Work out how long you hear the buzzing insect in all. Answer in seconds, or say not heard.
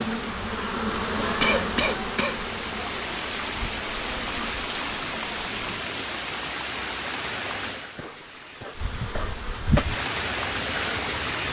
8 s.